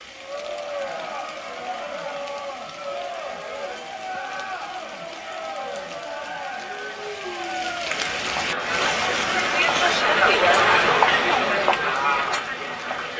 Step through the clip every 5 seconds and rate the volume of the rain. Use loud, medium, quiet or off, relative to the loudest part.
medium, loud, medium.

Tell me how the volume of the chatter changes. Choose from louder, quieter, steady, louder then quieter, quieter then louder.
louder.